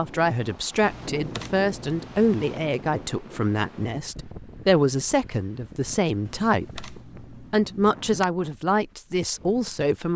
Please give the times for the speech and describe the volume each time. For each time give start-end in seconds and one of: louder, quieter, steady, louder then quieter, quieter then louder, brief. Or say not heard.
0.0-10.1 steady.